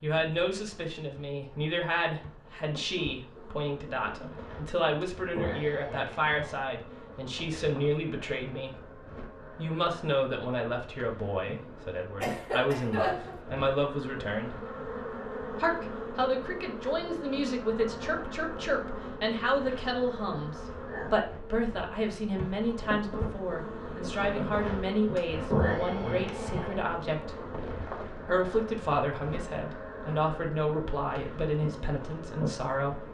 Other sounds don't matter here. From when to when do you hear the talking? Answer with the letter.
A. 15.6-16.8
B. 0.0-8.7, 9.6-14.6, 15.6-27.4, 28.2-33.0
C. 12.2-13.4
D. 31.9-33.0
B.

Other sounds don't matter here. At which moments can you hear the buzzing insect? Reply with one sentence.
The buzzing insect can be heard from 0.0 to 33.0 s.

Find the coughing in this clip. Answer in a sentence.
The coughing can be heard from 12.2 to 13.4 s.